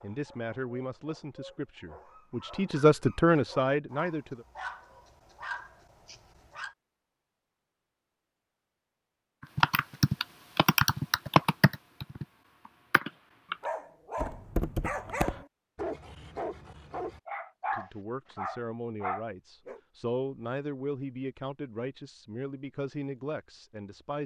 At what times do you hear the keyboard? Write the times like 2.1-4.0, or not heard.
9.6-15.4.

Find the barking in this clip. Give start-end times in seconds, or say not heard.
0.0-6.8, 13.5-19.8.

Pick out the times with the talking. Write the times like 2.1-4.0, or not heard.
0.0-4.5, 17.7-24.2.